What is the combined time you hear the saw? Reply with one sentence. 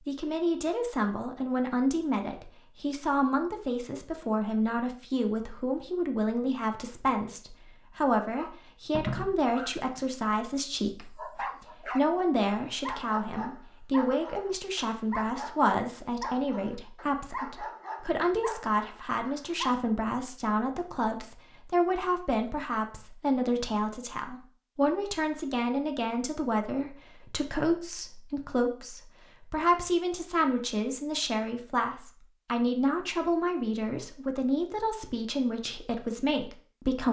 You can't hear the saw here.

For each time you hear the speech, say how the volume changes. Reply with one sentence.
You can hear the speech from 0.1 to 37.0 s, at a steady volume.